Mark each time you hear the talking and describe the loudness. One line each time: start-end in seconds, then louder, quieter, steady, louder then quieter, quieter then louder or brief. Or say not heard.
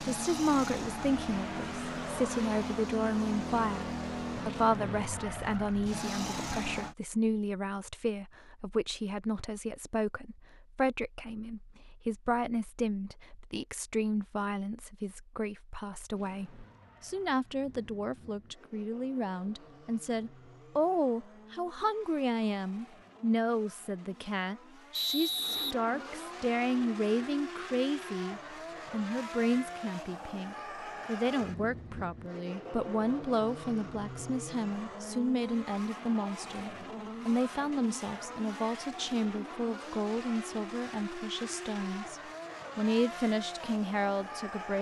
0.0-44.7 steady.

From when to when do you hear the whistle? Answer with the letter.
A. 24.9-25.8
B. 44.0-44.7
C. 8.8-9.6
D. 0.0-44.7
A.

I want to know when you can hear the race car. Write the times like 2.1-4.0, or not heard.
0.0-7.0, 16.1-44.7.